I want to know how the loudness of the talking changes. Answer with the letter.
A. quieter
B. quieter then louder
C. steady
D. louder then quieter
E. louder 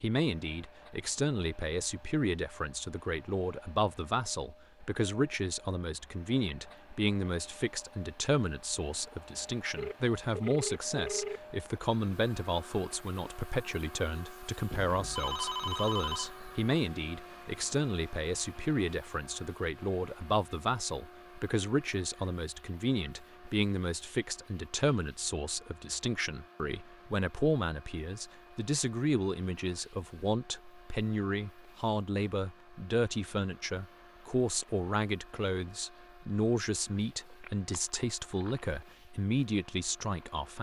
C.